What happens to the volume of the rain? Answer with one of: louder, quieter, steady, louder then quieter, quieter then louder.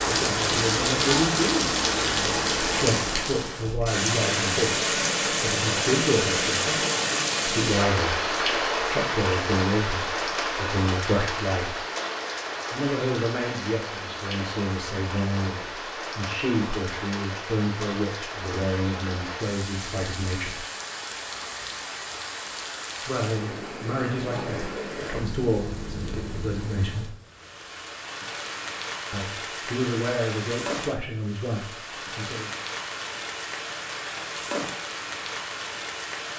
quieter.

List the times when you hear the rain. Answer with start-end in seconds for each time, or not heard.
0.0-36.3.